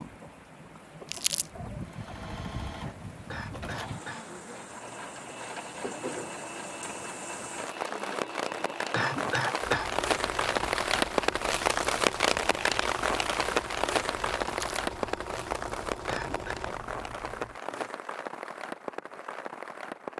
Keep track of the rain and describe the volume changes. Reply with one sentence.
The volume of the rain goes up, then down.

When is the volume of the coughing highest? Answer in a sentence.
The volume of the coughing peaks at 9 seconds.